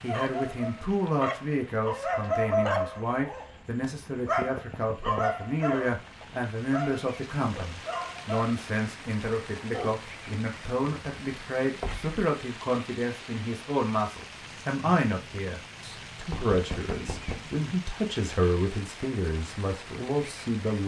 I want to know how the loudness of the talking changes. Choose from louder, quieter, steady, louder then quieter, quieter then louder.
steady.